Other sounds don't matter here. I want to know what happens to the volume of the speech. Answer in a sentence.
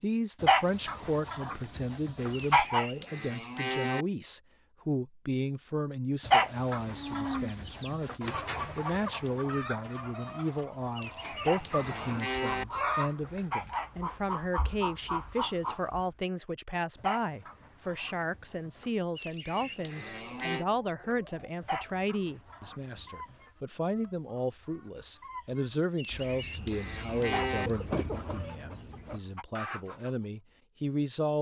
The volume of the speech stays about the same.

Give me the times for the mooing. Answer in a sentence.
The mooing can be heard from 2.3 to 4.0 s, from 10.9 to 12.7 s, from 19.1 to 20.6 s and from 25.9 to 27.7 s.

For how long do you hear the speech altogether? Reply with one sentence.
The speech can be heard for 31 seconds in total.